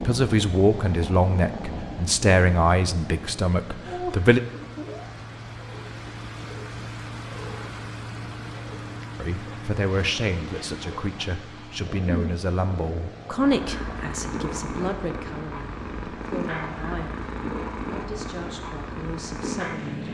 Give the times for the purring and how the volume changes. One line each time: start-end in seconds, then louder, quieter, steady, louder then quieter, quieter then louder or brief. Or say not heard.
0.0-20.0 quieter then louder.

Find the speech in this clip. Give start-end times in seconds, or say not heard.
0.0-4.4, 9.2-20.0.